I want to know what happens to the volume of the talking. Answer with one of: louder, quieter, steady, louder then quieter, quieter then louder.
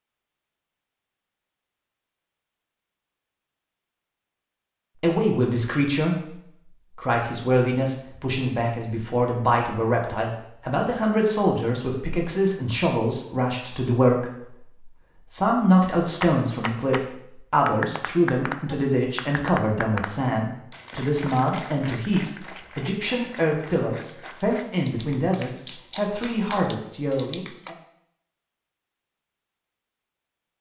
steady.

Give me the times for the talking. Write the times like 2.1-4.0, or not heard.
5.0-27.8.